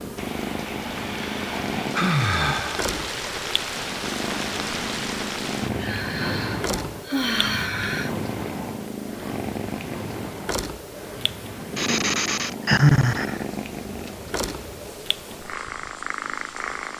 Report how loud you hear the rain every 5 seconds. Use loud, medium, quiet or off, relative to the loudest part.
loud, loud, medium, quiet.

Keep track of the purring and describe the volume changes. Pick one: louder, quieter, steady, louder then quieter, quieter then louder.
steady.